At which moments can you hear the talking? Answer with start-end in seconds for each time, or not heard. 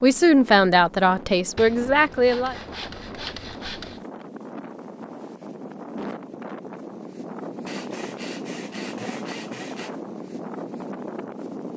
0.0-2.5.